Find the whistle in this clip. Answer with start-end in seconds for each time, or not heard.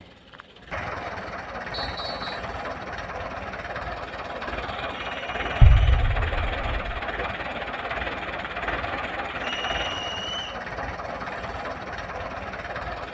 1.7-2.5, 5.0-5.8, 9.4-10.6.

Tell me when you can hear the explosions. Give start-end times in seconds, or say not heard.
5.6-7.0.